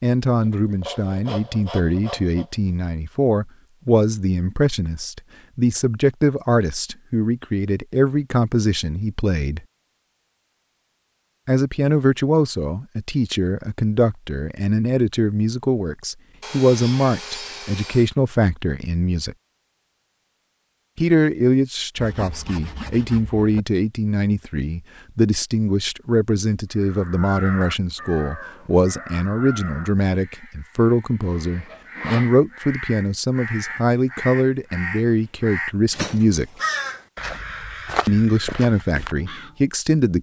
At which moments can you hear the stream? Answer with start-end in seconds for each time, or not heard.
not heard.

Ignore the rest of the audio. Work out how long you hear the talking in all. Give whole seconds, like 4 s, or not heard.
35 s.